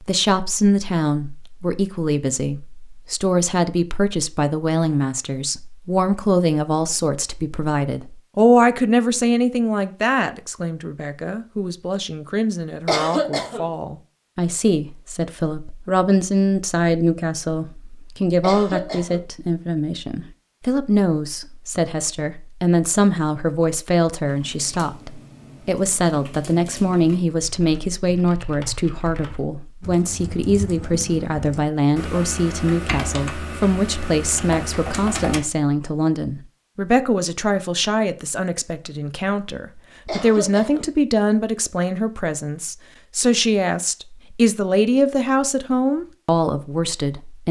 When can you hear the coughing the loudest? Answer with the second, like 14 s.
13 s.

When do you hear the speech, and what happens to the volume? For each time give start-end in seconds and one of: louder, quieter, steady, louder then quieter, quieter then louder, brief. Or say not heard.
0.0-47.4 steady.